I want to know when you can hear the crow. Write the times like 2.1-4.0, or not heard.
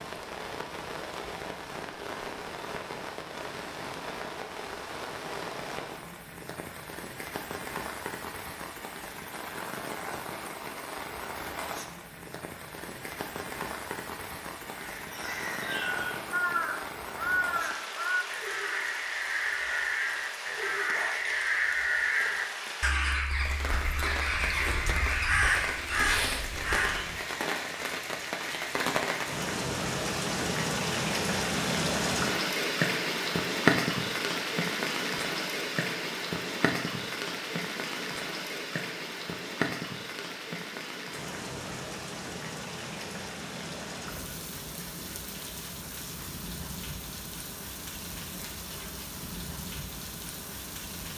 14.7-27.2.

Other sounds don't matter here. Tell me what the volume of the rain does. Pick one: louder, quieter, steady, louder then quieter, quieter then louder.
louder then quieter.